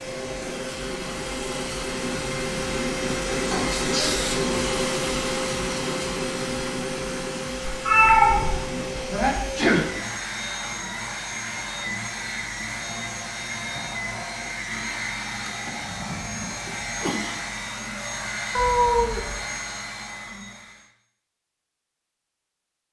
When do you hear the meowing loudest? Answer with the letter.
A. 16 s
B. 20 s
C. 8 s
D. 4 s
C.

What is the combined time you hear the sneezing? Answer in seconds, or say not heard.
3 s.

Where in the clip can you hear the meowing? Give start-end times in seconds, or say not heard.
7.7-9.4, 18.6-19.4.